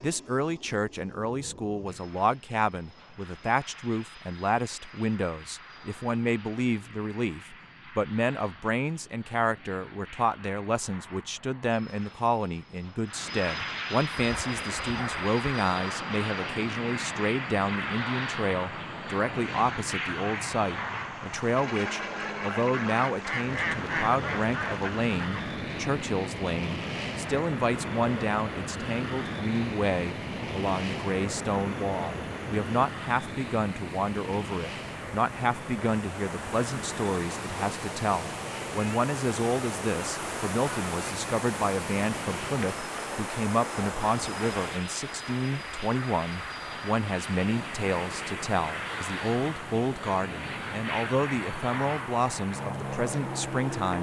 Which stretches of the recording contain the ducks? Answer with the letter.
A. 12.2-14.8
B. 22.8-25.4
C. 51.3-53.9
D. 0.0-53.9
B.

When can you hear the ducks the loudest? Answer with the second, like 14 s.
24 s.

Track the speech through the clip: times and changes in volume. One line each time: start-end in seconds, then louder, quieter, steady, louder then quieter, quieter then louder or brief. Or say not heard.
0.0-53.9 steady.